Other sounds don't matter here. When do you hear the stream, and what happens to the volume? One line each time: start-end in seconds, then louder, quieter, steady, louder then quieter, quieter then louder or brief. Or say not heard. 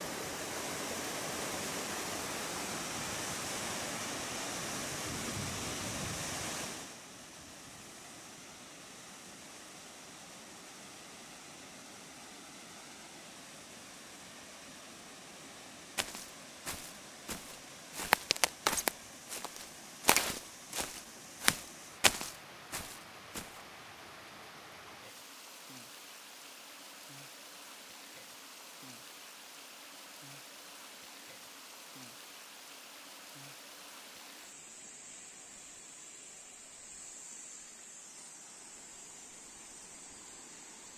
0.0-40.9 quieter.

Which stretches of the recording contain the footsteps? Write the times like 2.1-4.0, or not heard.
15.9-23.4.